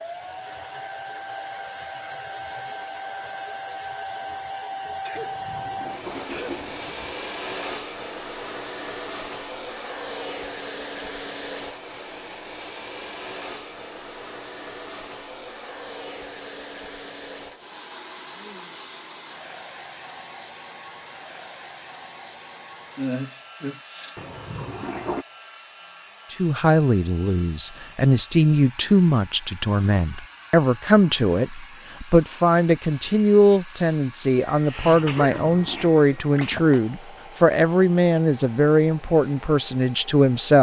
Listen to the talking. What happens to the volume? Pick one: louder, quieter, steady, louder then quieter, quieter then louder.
steady.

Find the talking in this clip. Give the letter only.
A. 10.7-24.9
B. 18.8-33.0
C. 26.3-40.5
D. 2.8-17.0
C.